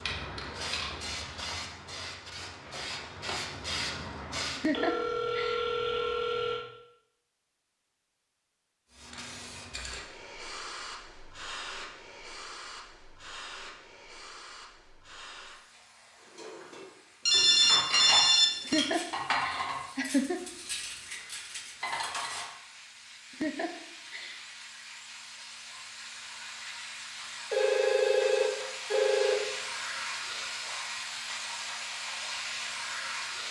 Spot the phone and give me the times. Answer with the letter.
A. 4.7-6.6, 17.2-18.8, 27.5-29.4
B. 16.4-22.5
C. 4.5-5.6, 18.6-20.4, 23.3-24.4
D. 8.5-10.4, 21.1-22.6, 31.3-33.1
A.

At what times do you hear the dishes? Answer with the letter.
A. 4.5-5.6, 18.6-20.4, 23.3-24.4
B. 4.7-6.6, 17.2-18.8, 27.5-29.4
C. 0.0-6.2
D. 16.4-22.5
D.